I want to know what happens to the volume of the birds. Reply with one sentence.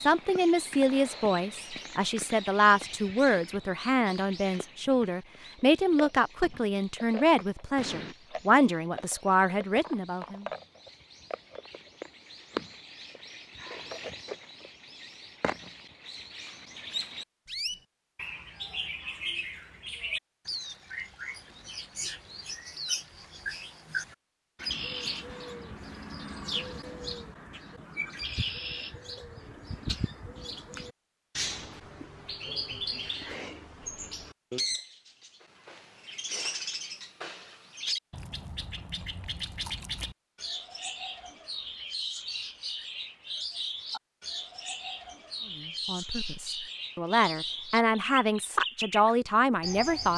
The loudness of the birds goes up.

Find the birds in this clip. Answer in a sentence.
You can hear the birds from 0.0 to 50.1 s.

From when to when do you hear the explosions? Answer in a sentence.
The explosions can be heard from 7.8 to 8.2 s.